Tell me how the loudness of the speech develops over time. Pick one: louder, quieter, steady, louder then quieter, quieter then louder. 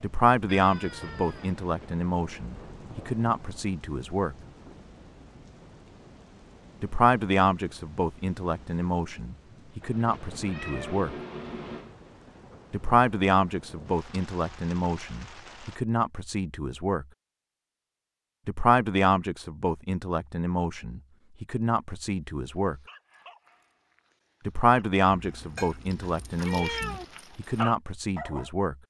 steady.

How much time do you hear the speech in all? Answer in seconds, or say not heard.
22 s.